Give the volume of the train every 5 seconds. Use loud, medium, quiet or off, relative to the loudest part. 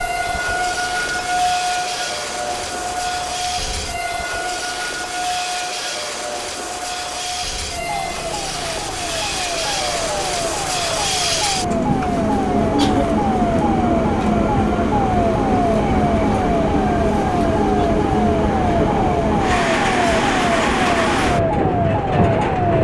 medium, medium, loud, loud, loud.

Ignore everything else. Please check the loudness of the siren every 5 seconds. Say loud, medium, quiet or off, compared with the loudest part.
loud, medium, loud, loud, loud.